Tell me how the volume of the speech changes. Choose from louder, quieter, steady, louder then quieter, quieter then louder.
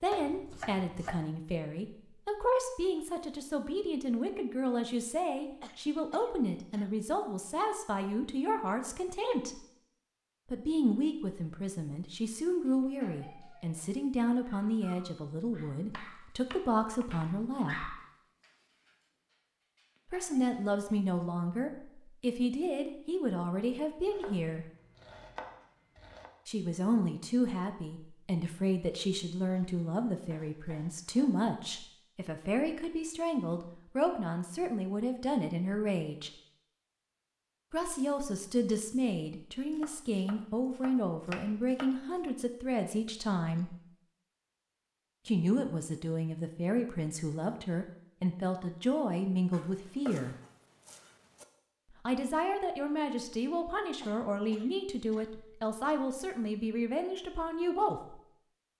steady.